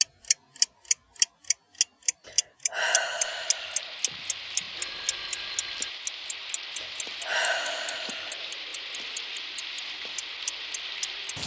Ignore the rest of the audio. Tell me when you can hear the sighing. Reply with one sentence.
The sighing can be heard from 2.2 to 4.0 s and from 6.8 to 8.5 s.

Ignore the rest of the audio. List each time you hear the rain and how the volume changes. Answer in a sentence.
You can hear the rain from 3.2 to 11.4 s, at a steady volume.